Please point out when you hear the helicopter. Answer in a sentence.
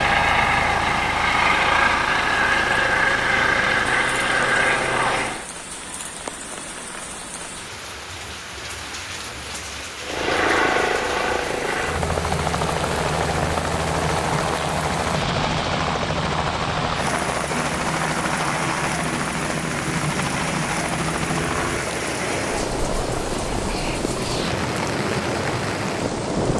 The helicopter can be heard from 0.0 to 5.5 s and from 10.0 to 26.5 s.